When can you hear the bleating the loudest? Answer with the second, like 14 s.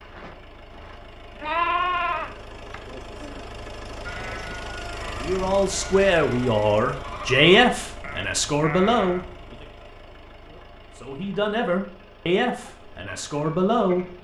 2 s.